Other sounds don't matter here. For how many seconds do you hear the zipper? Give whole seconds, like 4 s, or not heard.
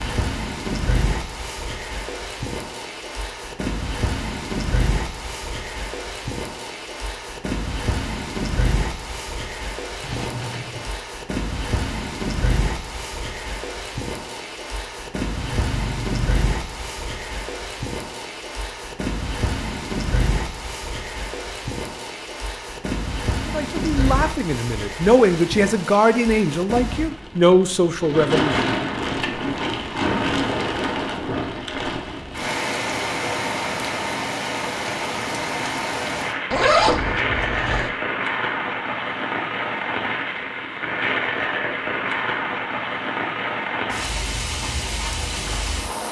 3 s.